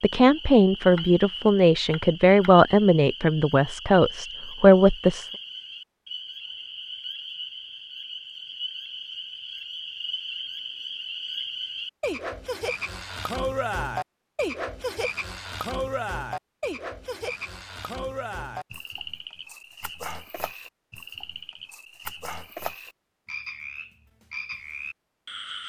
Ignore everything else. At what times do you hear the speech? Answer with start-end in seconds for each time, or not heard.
0.0-5.3.